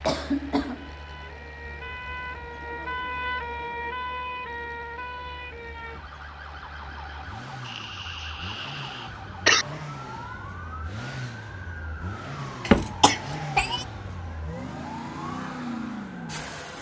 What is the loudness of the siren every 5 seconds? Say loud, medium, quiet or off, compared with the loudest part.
loud, medium, medium, medium.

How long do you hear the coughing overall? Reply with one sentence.
You can hear the coughing for 4 seconds altogether.